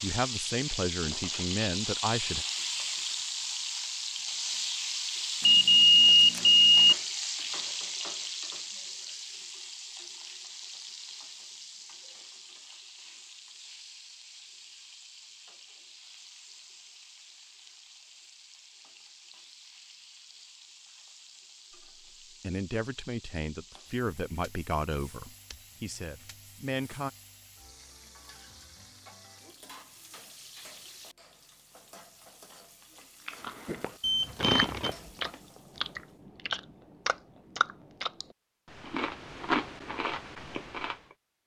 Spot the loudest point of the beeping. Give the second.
6 s.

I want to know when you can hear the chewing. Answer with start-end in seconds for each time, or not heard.
33.2-41.0.